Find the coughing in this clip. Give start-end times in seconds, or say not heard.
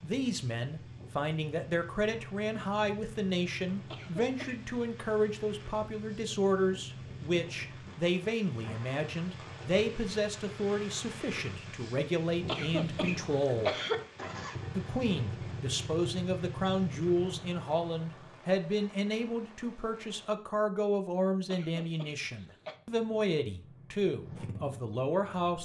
3.9-4.7, 12.4-13.9, 21.5-22.8.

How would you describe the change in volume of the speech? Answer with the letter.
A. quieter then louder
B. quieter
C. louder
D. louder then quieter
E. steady
E.